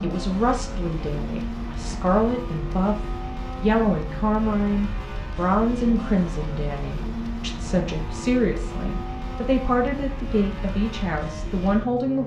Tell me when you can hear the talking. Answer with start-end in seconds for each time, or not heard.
0.0-12.2.